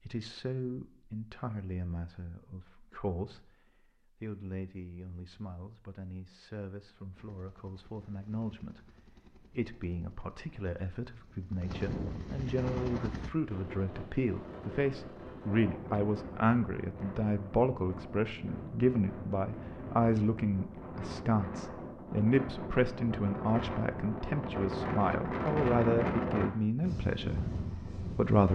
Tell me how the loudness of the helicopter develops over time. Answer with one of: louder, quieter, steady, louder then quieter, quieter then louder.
louder.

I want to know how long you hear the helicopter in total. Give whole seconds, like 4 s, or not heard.
6 s.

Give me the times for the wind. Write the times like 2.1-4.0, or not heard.
12.6-28.5.